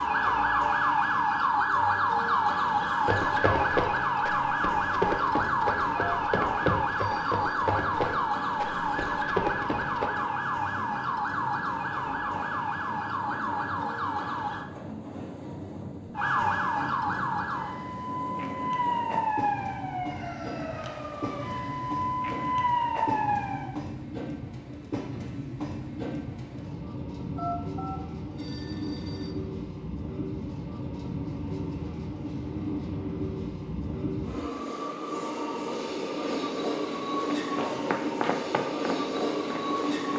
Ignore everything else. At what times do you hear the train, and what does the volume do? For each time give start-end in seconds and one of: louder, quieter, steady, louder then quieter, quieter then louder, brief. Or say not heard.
0.0-40.1 louder.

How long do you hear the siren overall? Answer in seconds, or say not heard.
22 s.